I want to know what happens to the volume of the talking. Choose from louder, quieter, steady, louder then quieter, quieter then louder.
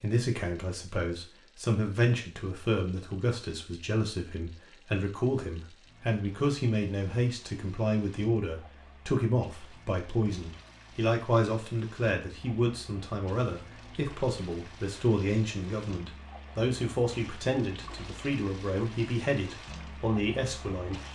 steady.